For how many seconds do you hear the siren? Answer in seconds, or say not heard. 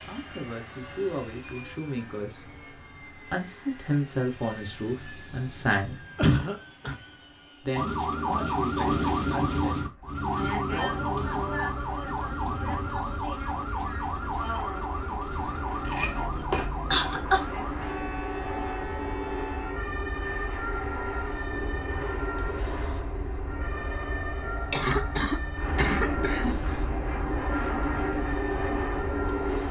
22 s.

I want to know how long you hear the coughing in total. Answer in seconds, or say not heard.
4 s.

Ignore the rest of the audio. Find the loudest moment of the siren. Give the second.
9 s.